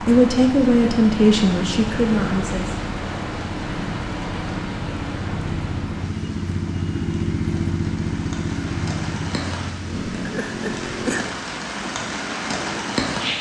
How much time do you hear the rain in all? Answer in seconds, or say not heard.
13 s.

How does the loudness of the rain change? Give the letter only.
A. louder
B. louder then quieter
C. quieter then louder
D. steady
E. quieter
C.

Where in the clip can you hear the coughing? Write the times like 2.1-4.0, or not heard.
10.2-11.4.